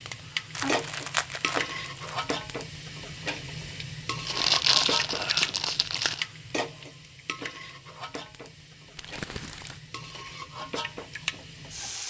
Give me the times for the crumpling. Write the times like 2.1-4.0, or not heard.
0.6-2.1, 4.2-6.2, 8.9-9.8.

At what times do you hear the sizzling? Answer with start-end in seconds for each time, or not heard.
0.0-12.0.